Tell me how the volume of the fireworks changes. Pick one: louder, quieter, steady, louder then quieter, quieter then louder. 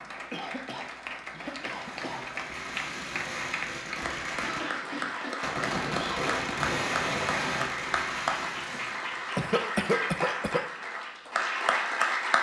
louder then quieter.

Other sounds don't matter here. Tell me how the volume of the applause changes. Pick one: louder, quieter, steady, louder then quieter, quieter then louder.
louder.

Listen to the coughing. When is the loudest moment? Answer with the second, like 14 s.
10 s.